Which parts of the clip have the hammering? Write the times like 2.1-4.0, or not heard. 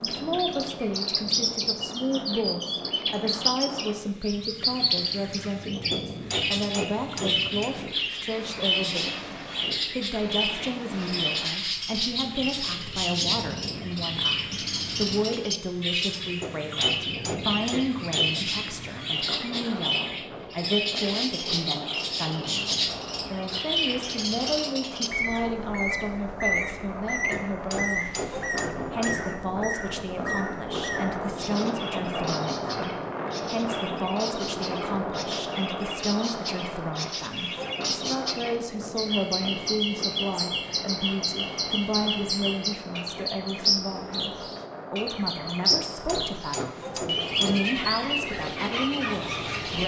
5.9-7.8, 16.4-18.4, 27.3-29.3, 45.7-47.7.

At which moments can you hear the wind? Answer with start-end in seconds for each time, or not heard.
0.0-49.8.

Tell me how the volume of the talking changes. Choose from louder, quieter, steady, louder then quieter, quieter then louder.
steady.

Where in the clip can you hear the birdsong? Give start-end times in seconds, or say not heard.
0.0-49.8.